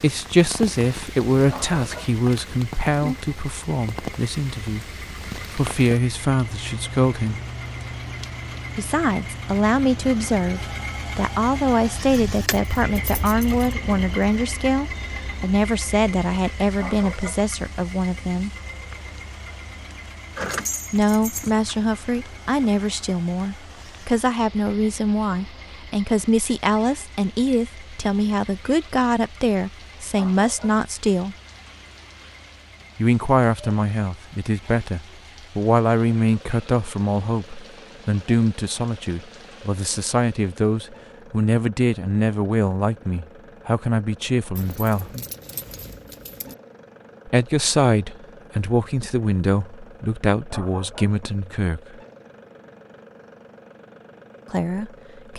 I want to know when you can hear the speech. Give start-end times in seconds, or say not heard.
0.0-7.4, 8.8-18.5, 20.9-31.4, 33.0-45.1, 47.2-52.0, 54.5-55.3.